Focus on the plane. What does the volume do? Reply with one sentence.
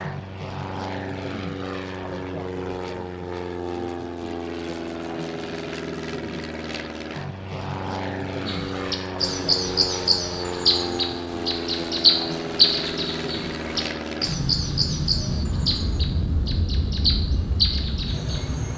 The volume of the plane stays about the same.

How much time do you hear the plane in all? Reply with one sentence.
You can hear the plane for 19 seconds altogether.